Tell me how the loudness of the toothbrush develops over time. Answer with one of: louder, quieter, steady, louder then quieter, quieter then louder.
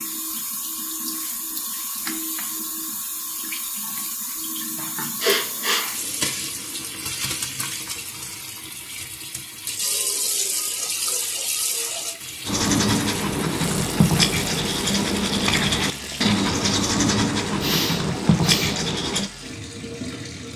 steady.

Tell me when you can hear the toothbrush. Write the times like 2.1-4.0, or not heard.
12.4-19.3.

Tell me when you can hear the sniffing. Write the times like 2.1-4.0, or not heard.
5.2-5.8, 17.6-18.8.